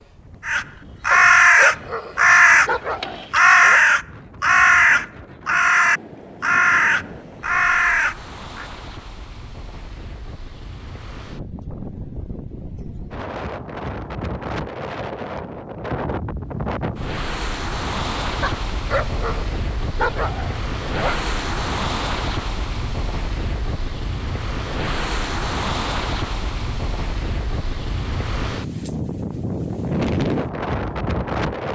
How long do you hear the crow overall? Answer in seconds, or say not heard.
8 s.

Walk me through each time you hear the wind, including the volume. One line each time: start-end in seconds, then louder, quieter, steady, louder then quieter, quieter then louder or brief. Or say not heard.
0.0-31.7 louder.